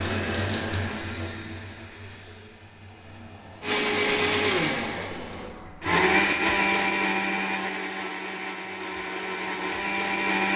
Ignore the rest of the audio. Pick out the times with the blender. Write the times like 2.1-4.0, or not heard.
3.6-10.5.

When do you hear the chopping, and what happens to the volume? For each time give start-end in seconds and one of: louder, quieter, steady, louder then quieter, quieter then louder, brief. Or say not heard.
not heard.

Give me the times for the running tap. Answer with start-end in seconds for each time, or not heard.
0.0-5.8.